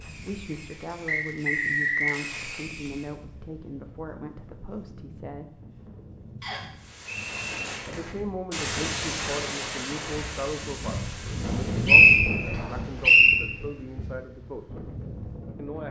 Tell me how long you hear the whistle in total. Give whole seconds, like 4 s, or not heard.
4 s.